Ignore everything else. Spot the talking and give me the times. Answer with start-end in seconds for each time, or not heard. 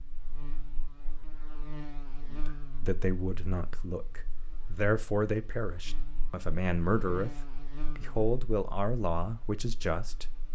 2.2-10.5.